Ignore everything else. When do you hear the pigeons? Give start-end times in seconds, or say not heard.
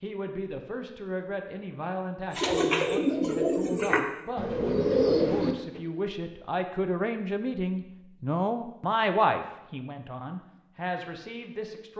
2.3-5.8.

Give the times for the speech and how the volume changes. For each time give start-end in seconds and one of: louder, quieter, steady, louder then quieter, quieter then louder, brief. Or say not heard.
0.0-11.9 louder then quieter.